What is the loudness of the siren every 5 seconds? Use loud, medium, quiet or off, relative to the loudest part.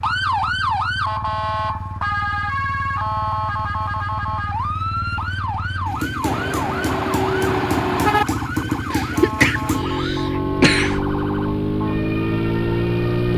loud, medium, medium.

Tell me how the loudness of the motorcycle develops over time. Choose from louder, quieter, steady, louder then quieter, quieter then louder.
louder.